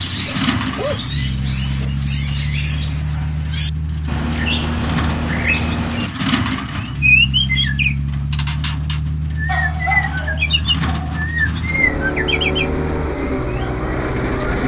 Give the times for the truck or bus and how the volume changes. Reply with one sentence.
The truck or bus can be heard from 0.0 to 14.6 s, at a steady volume.